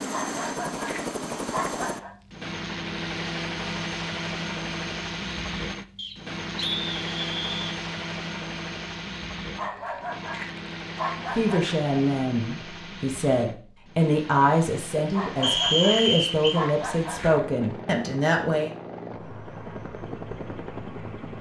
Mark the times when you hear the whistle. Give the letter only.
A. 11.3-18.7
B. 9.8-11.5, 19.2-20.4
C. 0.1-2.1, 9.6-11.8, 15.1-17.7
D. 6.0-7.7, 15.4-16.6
D.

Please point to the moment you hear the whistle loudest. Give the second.
16 s.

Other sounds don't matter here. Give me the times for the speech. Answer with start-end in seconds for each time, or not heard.
11.3-18.7.